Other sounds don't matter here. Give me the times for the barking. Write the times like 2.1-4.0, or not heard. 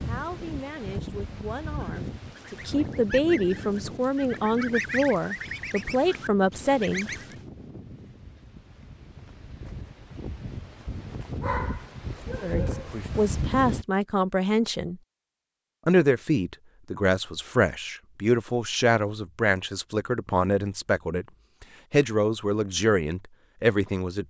11.4-12.9.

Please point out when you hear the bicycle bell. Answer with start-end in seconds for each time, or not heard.
not heard.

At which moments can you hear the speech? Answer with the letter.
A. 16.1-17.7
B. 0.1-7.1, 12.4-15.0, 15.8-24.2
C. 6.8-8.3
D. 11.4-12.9
B.